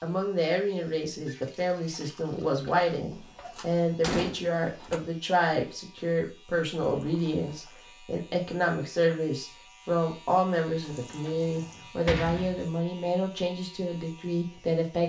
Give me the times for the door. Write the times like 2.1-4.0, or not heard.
3.1-5.0, 10.7-12.7.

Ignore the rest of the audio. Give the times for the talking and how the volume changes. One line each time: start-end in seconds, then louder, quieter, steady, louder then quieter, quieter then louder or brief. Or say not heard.
0.0-15.0 steady.